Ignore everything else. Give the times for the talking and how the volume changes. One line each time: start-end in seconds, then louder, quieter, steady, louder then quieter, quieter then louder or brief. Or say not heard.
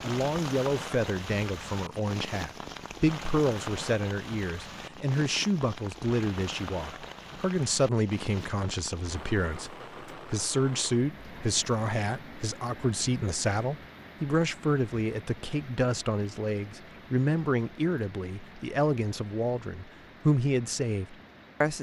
0.0-21.7 steady.